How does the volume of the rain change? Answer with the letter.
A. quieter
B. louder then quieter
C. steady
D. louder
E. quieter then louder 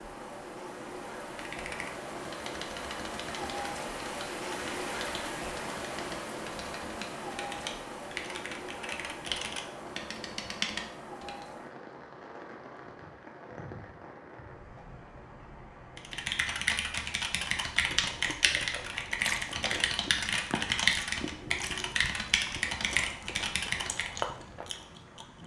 A.